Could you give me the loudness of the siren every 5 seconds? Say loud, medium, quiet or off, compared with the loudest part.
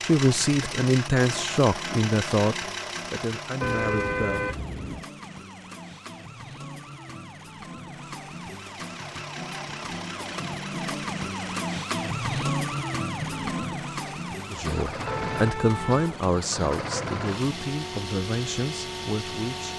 medium, medium, loud, medium.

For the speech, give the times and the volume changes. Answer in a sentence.
The speech can be heard from 0.0 to 4.5 s, getting quieter; and from 14.5 to 19.7 s, getting quieter.